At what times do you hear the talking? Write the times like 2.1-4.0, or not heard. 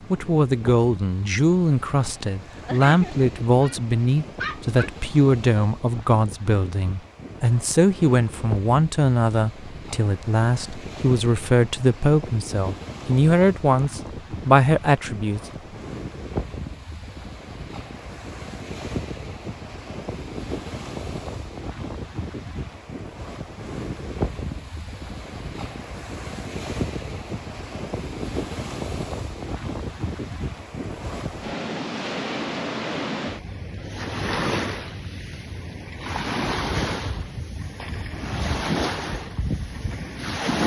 0.1-15.4.